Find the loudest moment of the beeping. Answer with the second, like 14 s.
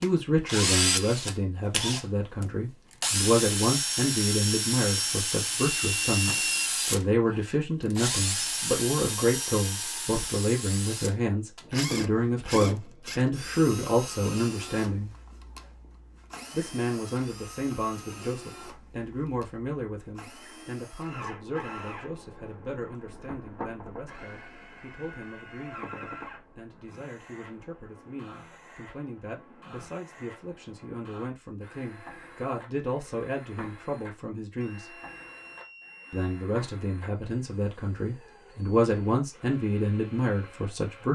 6 s.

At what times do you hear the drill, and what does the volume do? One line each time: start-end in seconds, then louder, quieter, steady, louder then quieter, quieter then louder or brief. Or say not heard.
0.0-41.1 quieter.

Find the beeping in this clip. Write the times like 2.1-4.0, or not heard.
5.8-6.7, 34.6-36.5.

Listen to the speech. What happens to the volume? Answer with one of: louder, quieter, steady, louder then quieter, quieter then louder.
quieter then louder.